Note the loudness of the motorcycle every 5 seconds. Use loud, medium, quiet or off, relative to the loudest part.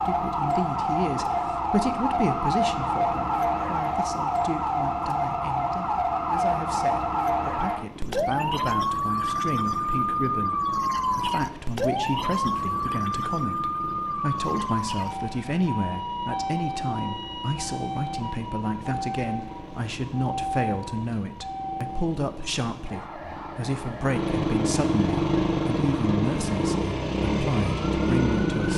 quiet, quiet, quiet, quiet, medium, loud.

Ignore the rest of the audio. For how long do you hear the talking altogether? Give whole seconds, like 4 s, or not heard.
29 s.